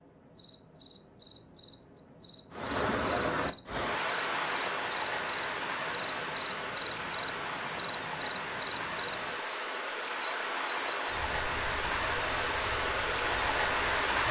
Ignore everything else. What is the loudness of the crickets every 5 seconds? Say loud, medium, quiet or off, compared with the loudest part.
medium, loud, medium.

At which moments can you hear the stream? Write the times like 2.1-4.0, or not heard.
2.5-14.2.